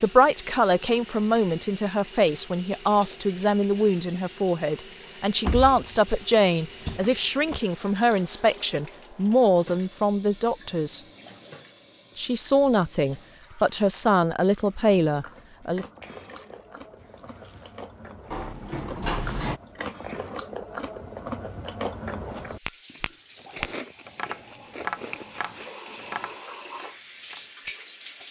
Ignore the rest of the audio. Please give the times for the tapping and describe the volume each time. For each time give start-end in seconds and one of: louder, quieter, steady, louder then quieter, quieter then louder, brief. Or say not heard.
22.6-28.2 quieter.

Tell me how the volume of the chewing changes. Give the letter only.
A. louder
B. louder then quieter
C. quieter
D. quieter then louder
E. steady
A.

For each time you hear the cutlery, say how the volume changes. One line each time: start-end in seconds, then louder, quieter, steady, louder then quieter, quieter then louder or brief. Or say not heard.
not heard.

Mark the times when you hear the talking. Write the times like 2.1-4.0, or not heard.
0.0-11.0, 12.2-15.8.